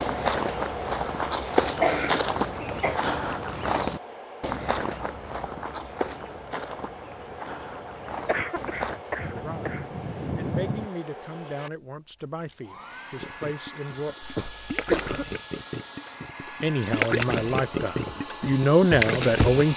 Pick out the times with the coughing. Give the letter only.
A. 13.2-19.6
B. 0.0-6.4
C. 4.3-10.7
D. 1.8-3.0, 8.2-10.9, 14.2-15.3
D.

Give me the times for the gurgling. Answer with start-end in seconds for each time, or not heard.
13.2-19.6.